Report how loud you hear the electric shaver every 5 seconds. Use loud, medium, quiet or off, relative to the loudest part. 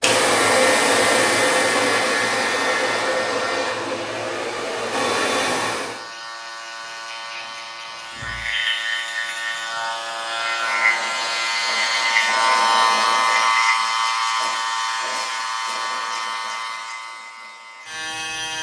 medium, medium, loud, medium.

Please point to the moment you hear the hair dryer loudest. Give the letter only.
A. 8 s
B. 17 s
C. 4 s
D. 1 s
D.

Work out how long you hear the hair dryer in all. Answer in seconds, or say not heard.
6 s.